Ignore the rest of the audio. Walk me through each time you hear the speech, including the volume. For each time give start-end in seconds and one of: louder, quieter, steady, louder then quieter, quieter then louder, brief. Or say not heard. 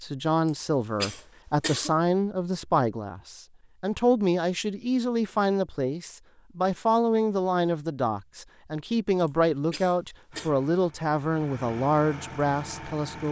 0.0-13.2 steady.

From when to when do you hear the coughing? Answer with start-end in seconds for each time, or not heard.
0.5-1.9, 9.2-10.5.